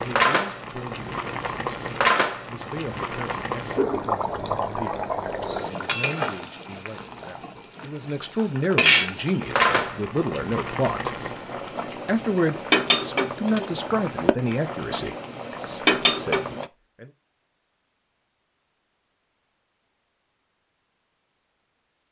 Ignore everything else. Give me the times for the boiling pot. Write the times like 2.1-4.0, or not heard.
0.0-16.6.